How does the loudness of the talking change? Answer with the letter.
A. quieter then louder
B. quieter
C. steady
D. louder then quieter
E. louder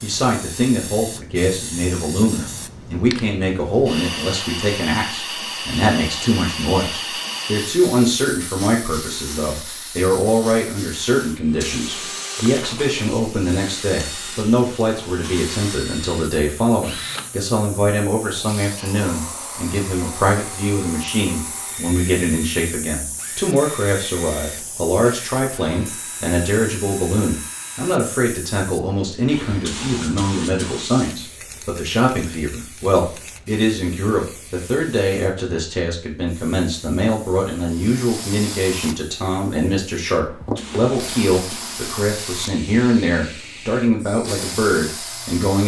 C.